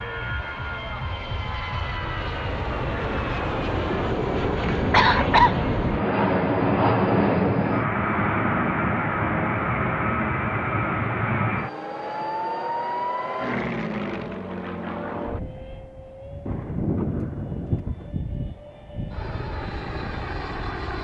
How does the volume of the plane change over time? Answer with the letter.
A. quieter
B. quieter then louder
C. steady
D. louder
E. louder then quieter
E.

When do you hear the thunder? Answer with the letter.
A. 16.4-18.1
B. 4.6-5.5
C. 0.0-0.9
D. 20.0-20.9
A.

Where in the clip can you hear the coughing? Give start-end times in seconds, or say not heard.
4.6-5.5.